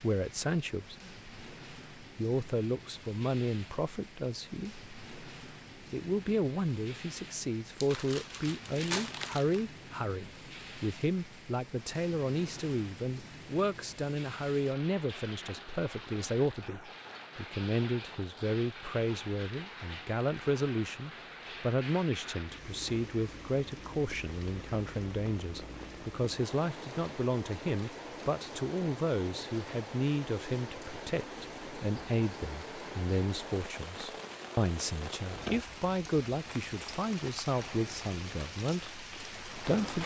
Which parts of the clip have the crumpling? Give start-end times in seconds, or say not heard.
7.8-9.7.